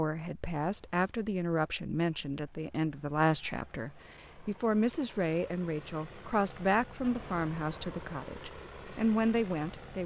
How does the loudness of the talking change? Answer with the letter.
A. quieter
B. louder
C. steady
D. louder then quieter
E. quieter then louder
C.